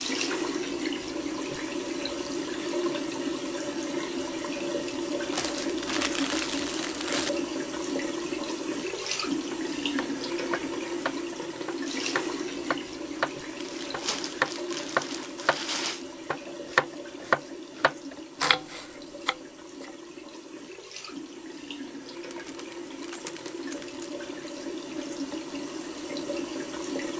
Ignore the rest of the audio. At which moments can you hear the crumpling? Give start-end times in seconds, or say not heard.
5.3-7.3, 13.6-16.1, 22.3-24.1.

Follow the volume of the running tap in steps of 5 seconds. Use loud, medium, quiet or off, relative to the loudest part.
loud, loud, loud, medium, medium, loud.